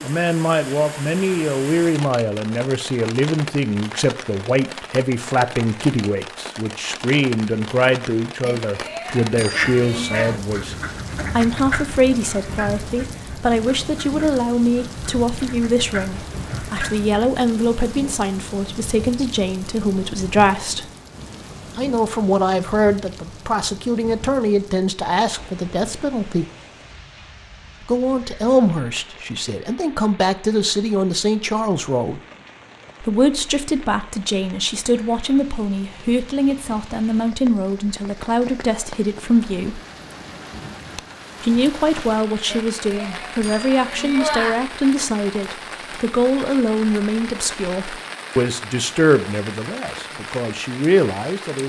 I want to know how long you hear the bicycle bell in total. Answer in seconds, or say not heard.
4 s.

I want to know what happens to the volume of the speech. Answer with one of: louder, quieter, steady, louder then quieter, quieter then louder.
steady.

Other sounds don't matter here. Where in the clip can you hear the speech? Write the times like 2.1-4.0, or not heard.
0.0-20.9, 21.8-26.4, 27.9-32.2, 33.0-39.8, 41.4-51.6.